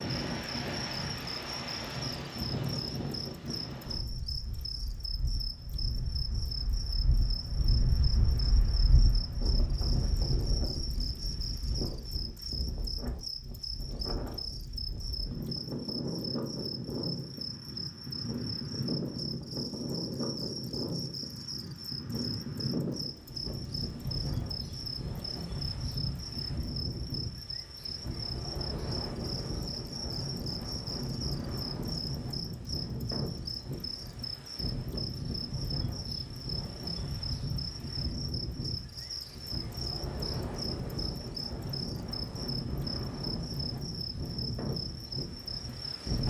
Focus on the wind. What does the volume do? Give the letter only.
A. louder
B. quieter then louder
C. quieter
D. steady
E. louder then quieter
D.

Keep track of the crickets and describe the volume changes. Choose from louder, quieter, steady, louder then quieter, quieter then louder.
steady.